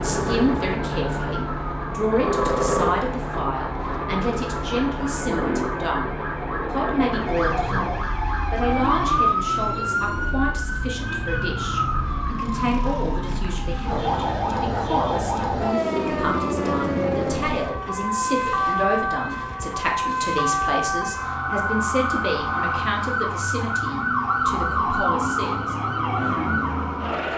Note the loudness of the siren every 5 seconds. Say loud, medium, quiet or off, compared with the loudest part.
medium, loud, loud, loud, loud, loud.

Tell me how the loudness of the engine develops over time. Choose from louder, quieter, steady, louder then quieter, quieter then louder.
quieter.